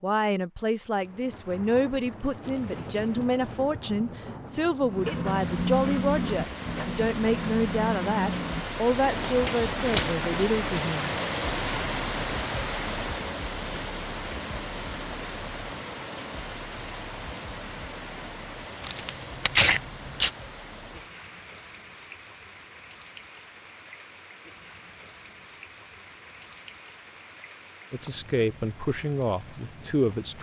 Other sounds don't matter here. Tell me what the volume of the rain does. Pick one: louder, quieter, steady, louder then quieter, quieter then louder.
louder then quieter.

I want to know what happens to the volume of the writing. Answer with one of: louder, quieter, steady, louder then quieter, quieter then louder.
quieter.